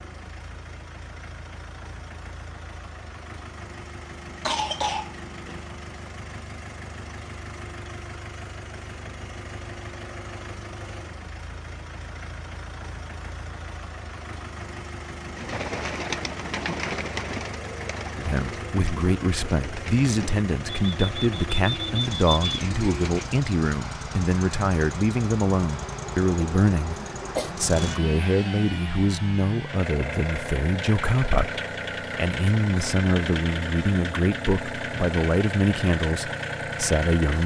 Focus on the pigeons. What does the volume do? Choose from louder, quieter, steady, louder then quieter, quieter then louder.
quieter then louder.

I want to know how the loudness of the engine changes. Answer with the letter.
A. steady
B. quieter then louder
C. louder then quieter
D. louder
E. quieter
D.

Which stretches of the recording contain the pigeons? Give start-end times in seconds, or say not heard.
15.3-23.2.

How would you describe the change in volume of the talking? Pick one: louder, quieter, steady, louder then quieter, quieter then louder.
steady.